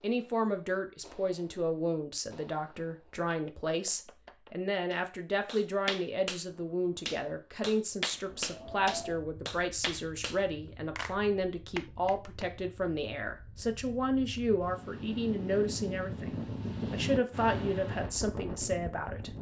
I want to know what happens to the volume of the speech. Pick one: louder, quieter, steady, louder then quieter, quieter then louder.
steady.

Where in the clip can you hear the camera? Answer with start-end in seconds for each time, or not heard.
not heard.